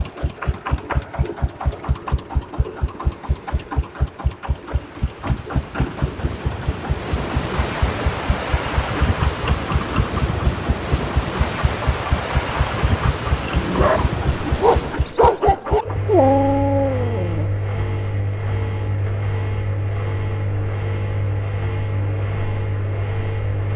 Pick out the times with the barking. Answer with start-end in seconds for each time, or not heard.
13.5-17.5.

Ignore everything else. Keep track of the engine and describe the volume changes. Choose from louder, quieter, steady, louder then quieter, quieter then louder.
steady.